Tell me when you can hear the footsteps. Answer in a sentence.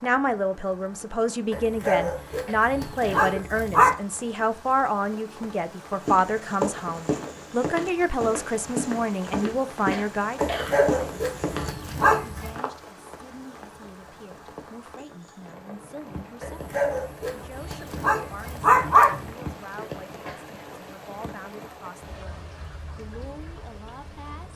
The footsteps can be heard from 6.0 to 12.7 s.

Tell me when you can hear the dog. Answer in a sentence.
The dog can be heard from 1.5 to 4.0 s, from 10.3 to 12.5 s and from 16.4 to 19.3 s.